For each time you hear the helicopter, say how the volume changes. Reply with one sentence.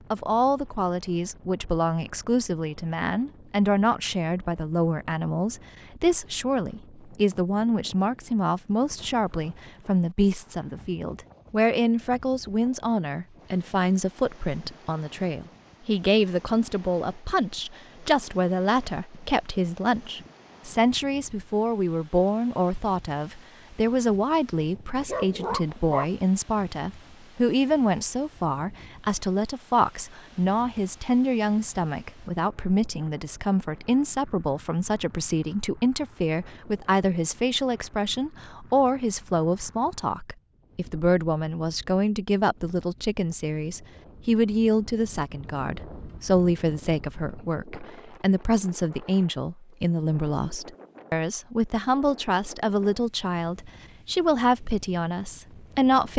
The helicopter can't be heard in this clip.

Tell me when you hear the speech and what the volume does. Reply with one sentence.
You can hear the speech from 0.1 to 56.1 s, at a steady volume.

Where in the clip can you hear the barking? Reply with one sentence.
You can hear the barking from 25.0 to 26.1 s.